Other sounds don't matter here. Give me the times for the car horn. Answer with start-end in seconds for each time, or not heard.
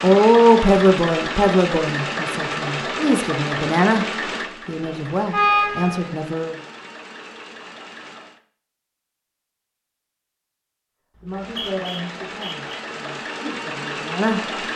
4.8-6.1.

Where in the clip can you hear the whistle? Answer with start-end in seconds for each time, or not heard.
11.2-12.8.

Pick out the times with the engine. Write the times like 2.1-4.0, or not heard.
0.0-8.4, 11.2-14.7.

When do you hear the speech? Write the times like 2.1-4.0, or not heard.
0.0-4.0, 4.7-6.5, 11.2-14.4.